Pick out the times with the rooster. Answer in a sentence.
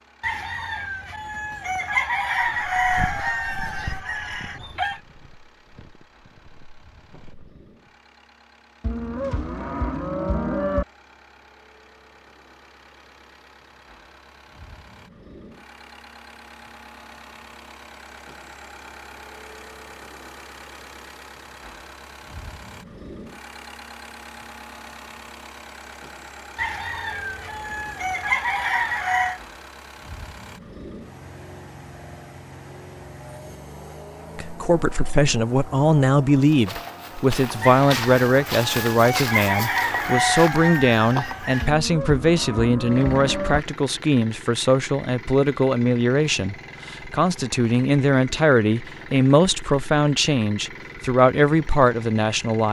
You can hear the rooster from 0.2 to 5.0 s, from 26.6 to 29.4 s and from 37.6 to 41.7 s.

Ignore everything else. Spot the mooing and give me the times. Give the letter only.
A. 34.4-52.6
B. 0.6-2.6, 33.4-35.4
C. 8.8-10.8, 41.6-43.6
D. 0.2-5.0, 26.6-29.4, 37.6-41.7
C.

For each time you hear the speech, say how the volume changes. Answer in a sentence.
You can hear the speech from 34.4 to 52.6 s, at a steady volume.